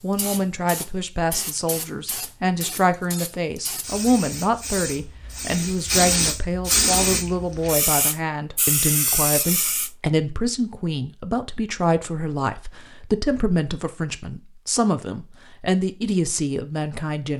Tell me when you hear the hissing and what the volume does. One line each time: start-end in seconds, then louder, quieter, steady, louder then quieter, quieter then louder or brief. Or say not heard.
0.0-9.9 louder.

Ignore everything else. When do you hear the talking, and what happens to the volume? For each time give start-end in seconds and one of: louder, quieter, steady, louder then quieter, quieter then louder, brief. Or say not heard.
0.0-17.3 steady.